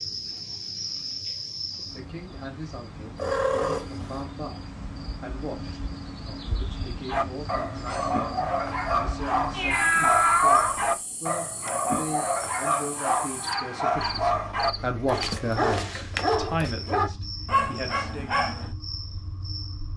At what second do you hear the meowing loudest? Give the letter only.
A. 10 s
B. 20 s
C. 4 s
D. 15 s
A.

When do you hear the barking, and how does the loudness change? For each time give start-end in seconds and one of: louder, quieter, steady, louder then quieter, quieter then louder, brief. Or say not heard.
7.0-18.8 steady.